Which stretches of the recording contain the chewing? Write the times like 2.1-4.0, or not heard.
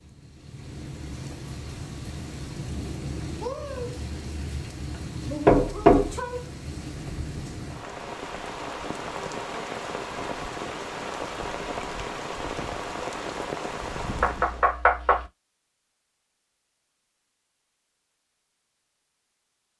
not heard.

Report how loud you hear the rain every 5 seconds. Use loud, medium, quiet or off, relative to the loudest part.
loud, loud, loud, off.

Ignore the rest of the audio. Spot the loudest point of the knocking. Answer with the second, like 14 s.
6 s.